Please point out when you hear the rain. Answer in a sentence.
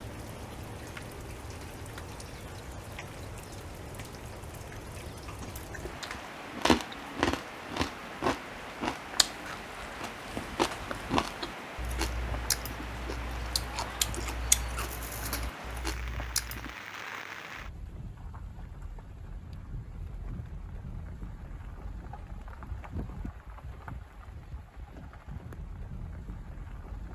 You can hear the rain from 0.0 to 27.1 s.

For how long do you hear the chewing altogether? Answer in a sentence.
You can hear the chewing for 11 seconds altogether.